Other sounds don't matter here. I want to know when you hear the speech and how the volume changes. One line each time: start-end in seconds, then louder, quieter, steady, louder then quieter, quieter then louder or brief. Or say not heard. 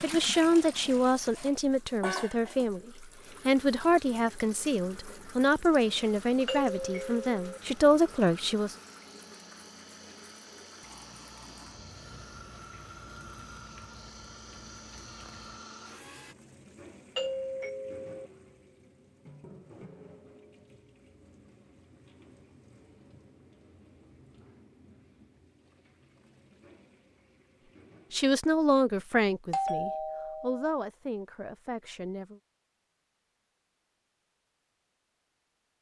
0.0-8.8 steady
28.1-32.4 quieter.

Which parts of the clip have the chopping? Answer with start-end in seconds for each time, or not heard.
not heard.